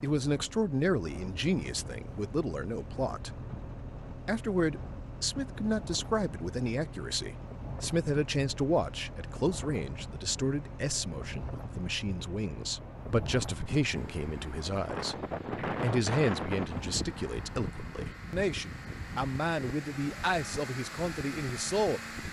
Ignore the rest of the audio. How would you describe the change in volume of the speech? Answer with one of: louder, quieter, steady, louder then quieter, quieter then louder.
steady.